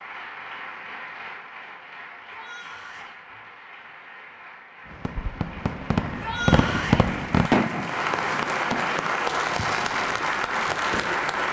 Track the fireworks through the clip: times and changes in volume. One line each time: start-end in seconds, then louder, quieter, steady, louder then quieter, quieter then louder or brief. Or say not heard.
4.8-11.3 louder then quieter.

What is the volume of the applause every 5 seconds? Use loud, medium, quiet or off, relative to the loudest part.
quiet, loud, loud.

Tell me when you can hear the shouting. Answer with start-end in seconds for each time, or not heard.
2.2-3.1, 6.0-7.0.